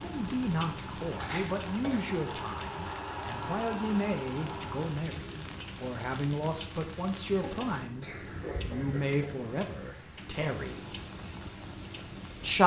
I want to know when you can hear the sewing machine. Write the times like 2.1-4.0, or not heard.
0.0-5.0.